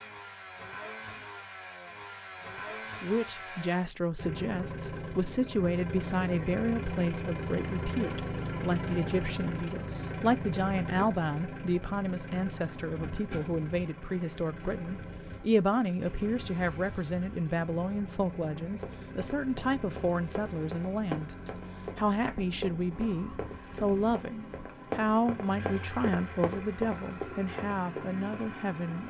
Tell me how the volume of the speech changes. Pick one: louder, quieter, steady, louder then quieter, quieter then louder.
steady.